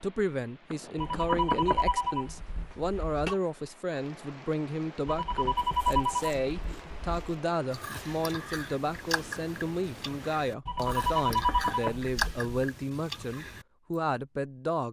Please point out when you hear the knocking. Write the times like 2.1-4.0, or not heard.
0.7-1.9, 10.8-12.1.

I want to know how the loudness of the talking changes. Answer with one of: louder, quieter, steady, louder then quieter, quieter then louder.
steady.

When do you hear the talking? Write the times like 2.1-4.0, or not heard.
0.0-14.8.